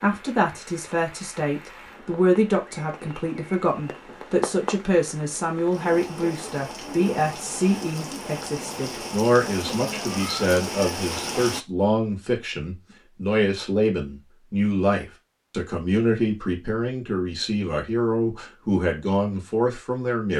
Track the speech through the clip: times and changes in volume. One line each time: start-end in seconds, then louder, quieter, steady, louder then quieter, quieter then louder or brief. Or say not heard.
0.0-20.3 steady.